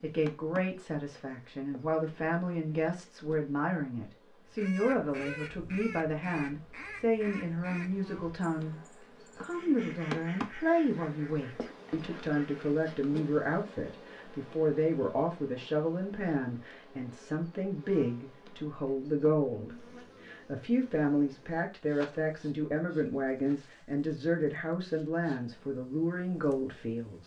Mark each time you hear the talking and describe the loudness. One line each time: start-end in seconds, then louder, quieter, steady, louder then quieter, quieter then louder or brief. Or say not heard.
0.0-27.2 steady.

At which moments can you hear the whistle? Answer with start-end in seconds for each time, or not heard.
not heard.